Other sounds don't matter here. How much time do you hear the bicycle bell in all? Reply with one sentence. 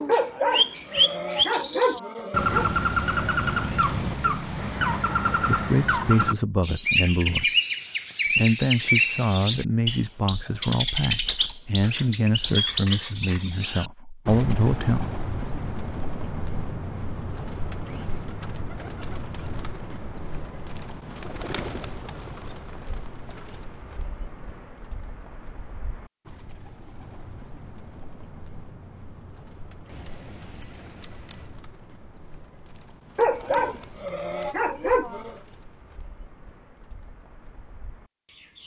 The bicycle bell can be heard for 2 seconds in total.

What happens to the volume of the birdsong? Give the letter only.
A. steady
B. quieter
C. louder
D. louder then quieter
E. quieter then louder
B.